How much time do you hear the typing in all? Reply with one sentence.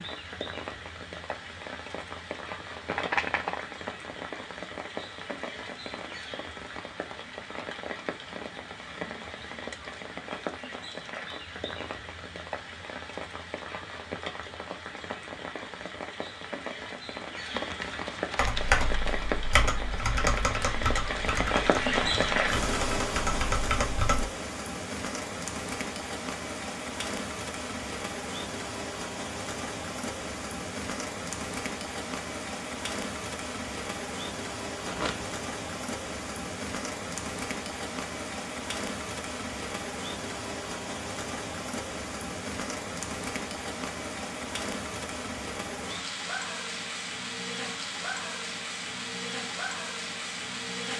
You can hear the typing for 6 seconds altogether.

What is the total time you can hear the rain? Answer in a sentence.
You can hear the rain for 51 seconds altogether.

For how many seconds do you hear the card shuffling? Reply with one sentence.
The card shuffling can be heard for 3 seconds in total.